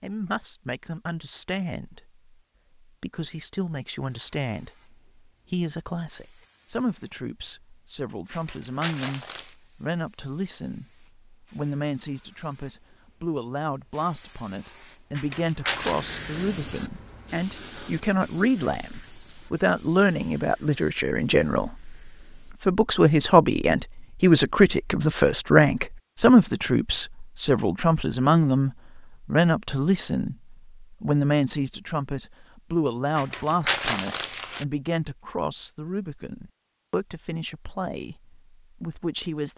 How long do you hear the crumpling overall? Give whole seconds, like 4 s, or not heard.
4 s.